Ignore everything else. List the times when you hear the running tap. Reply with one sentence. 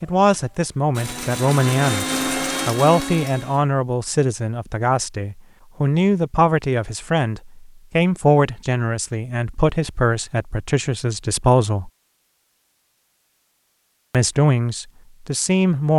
The running tap can't be heard in this clip.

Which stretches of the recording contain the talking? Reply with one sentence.
You can hear the talking from 0.0 to 11.9 s and from 14.1 to 15.9 s.